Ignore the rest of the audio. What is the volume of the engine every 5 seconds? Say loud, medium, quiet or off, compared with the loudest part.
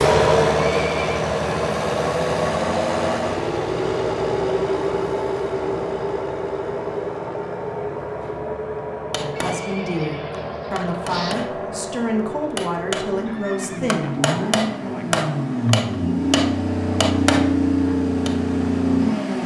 loud, medium, medium, loud.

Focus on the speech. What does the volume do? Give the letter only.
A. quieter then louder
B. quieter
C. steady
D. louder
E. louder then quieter
C.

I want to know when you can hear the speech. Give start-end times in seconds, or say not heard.
9.2-14.1.